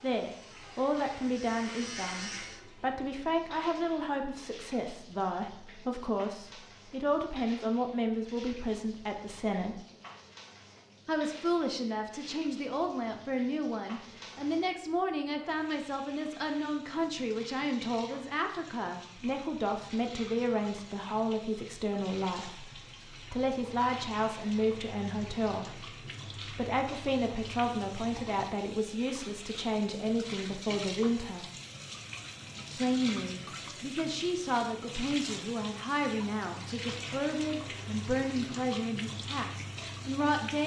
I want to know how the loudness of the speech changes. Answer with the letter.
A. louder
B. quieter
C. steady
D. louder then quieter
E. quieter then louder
C.